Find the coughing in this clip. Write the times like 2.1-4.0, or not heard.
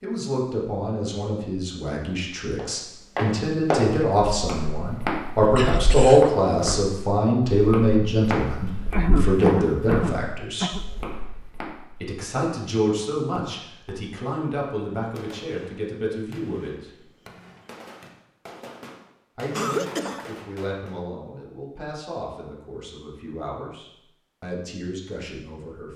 5.5-6.3, 8.9-10.8, 19.5-20.3.